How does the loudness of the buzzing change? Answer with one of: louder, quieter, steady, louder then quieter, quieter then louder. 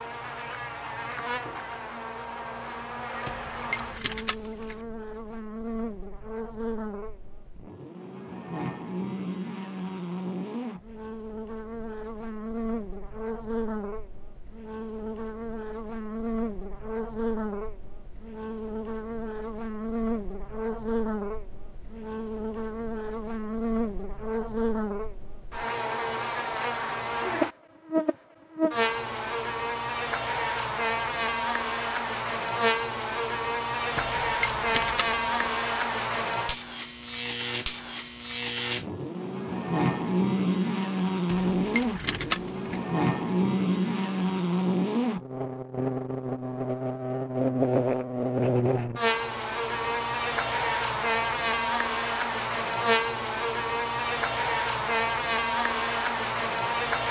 louder.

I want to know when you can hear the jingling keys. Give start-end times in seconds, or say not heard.
3.2-4.8, 34.0-35.5, 41.2-42.9.